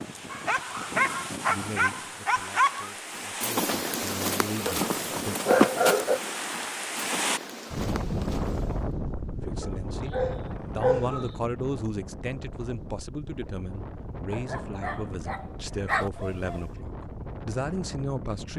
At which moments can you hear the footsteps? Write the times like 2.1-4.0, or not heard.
3.1-8.8.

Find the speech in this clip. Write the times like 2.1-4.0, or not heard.
1.4-5.3, 9.4-18.5.